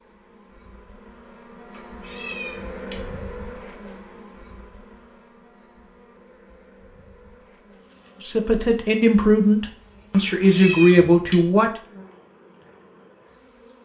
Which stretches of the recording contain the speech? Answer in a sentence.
The speech can be heard from 8.2 to 11.7 s.